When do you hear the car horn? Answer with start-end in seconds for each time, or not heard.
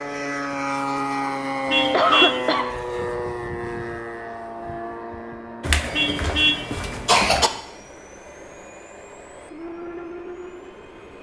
1.6-2.4, 5.9-6.6.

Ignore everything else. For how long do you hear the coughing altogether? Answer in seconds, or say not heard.
3 s.